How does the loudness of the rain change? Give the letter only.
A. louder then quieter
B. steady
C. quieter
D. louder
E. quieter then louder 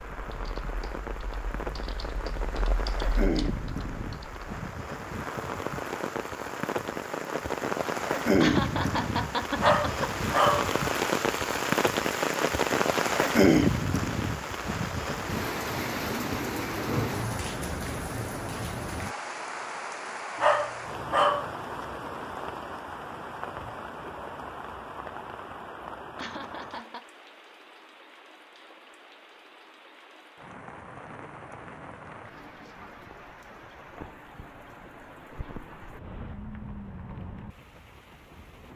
A.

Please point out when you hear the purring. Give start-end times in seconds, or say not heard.
not heard.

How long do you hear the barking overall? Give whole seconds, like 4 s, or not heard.
2 s.